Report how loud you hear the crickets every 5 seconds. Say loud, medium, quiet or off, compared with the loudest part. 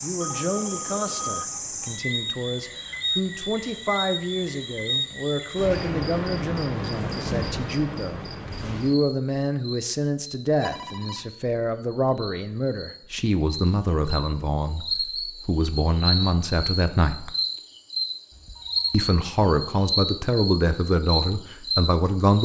loud, loud, medium, loud, loud.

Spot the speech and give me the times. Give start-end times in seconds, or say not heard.
0.0-17.4, 18.9-22.4.